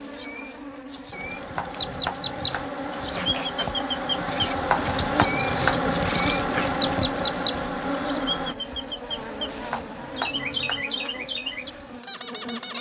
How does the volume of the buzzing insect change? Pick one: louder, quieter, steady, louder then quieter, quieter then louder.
louder then quieter.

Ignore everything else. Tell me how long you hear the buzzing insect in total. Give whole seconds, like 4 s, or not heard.
13 s.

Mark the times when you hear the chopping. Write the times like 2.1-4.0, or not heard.
1.6-2.7, 4.7-5.8, 9.7-10.8.